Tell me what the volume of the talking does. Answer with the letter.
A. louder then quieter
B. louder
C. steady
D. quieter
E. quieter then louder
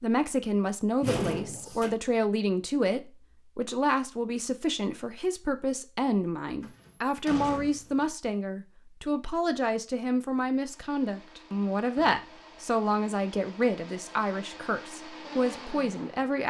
C.